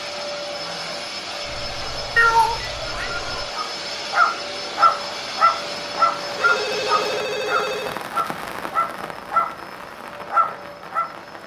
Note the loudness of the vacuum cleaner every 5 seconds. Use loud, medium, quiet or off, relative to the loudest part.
loud, loud, quiet.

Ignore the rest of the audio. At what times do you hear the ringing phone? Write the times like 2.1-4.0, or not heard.
1.4-3.5, 6.3-8.1.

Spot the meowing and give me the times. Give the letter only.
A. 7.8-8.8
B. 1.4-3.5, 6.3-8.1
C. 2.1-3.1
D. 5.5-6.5
C.